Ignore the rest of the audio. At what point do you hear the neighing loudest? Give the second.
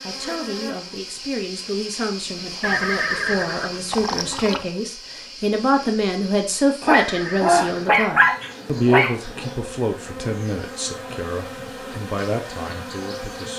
3 s.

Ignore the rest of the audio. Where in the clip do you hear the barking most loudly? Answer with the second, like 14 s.
8 s.